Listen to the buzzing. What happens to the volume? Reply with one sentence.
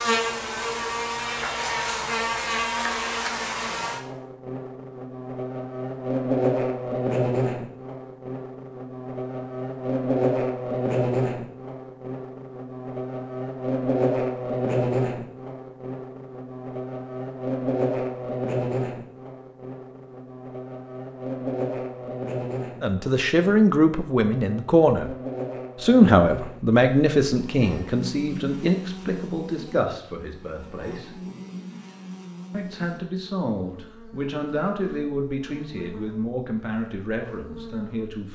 The volume of the buzzing goes down.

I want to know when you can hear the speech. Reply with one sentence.
You can hear the speech from 22.8 to 25.1 s, from 25.8 to 31.1 s and from 32.5 to 38.3 s.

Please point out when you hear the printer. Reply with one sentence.
You can't hear the printer here.